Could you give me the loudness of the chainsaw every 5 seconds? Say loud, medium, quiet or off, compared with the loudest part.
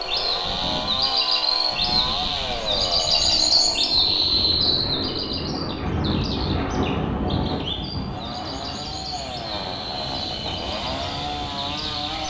loud, medium, loud.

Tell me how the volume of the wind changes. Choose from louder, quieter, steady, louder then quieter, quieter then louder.
louder then quieter.